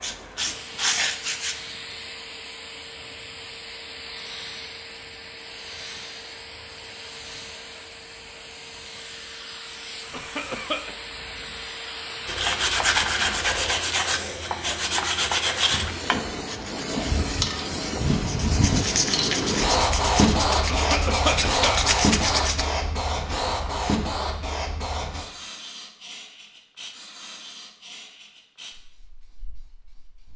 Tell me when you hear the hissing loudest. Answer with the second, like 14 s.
20 s.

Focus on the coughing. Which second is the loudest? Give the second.
21 s.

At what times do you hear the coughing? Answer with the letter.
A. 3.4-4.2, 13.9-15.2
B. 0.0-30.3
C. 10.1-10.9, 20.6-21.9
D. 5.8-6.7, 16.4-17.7
C.